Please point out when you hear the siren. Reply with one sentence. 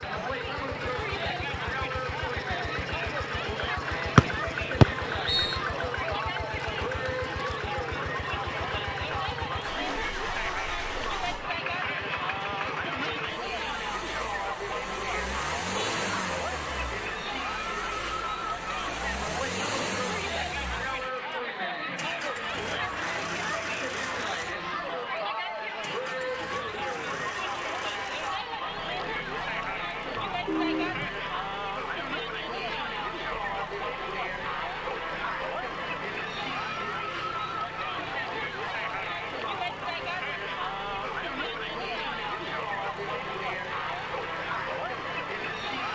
You can't hear the siren here.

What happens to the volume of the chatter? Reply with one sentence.
The volume of the chatter stays about the same.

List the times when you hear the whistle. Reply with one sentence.
You can hear the whistle from 4.2 to 5.6 s.